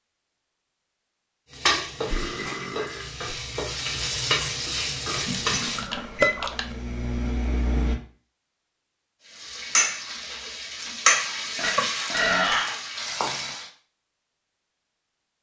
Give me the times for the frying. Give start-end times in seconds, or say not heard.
1.5-5.9, 9.2-13.7.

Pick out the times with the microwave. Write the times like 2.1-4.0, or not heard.
5.9-8.0.